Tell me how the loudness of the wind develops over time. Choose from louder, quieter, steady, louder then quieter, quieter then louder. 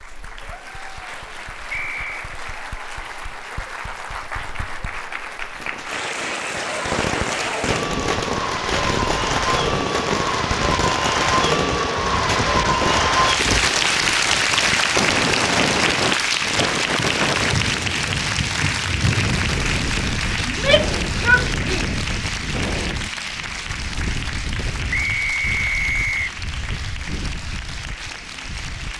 louder then quieter.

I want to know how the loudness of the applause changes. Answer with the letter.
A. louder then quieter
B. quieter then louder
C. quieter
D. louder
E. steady
A.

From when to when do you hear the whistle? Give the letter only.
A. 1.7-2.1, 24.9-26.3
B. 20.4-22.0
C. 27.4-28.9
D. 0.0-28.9
A.